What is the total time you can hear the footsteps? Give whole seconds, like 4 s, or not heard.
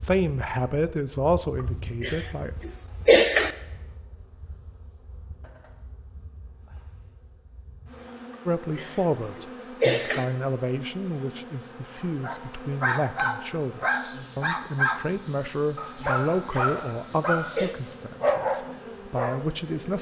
not heard.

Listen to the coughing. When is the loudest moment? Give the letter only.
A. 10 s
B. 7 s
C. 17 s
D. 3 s
D.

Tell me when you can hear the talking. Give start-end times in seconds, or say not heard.
0.0-2.5, 8.4-19.9.